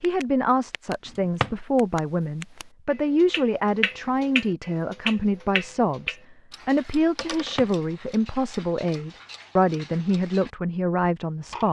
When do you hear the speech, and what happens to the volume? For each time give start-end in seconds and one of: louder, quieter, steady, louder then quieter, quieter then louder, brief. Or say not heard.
0.0-11.6 steady.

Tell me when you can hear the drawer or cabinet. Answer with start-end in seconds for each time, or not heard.
1.1-1.5, 7.2-7.7.